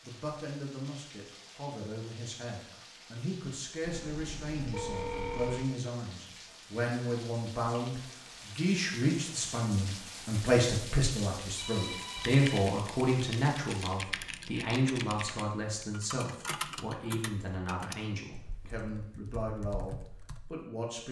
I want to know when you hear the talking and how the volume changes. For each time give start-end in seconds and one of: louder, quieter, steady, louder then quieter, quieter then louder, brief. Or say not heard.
0.0-21.0 louder then quieter.